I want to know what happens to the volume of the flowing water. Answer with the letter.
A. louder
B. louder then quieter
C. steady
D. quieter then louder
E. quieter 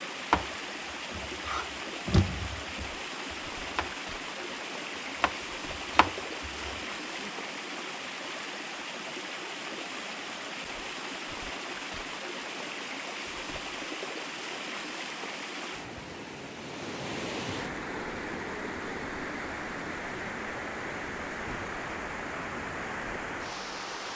C.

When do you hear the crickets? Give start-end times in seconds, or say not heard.
not heard.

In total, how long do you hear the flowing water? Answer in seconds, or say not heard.
24 s.